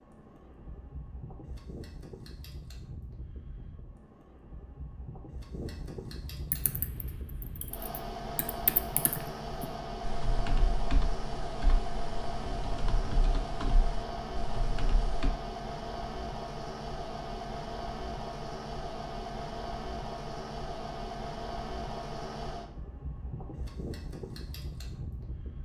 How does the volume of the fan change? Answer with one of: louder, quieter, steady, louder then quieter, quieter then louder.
louder.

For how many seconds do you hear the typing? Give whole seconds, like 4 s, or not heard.
9 s.